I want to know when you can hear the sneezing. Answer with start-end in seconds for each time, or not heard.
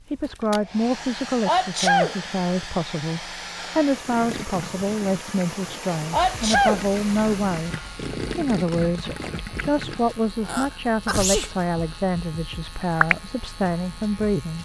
1.4-2.1, 6.1-6.8, 10.4-11.5.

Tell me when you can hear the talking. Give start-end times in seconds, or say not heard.
0.1-14.6.